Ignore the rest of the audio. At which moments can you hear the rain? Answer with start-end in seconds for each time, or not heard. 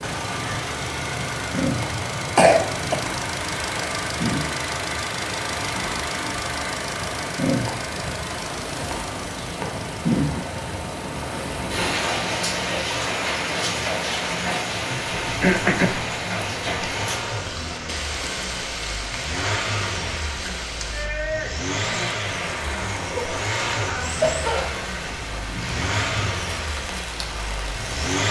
0.0-28.2.